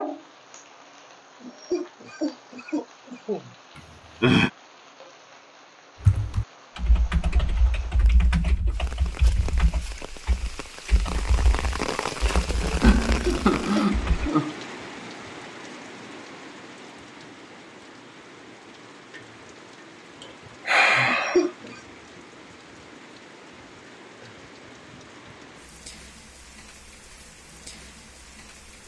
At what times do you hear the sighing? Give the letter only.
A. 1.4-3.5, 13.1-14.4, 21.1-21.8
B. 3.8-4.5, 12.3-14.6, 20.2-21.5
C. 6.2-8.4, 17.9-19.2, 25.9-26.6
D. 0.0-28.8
B.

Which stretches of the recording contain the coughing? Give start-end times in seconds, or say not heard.
1.4-3.5, 13.1-14.4, 21.1-21.8.